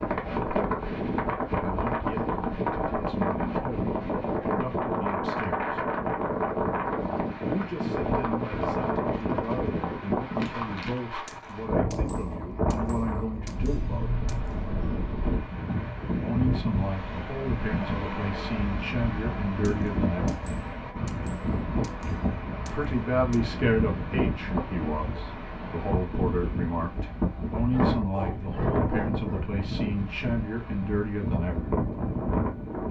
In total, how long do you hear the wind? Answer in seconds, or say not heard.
33 s.